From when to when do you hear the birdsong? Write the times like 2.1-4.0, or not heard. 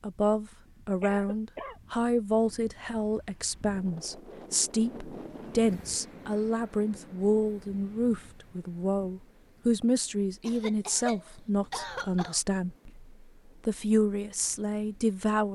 not heard.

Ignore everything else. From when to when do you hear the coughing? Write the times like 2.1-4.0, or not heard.
1.0-1.8, 10.4-12.4.